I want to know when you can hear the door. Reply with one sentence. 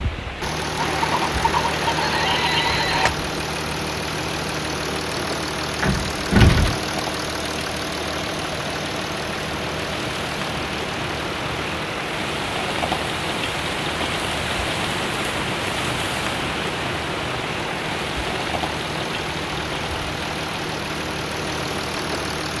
The door can be heard from 5.8 to 6.8 s.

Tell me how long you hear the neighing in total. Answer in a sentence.
You can hear the neighing for 2 seconds altogether.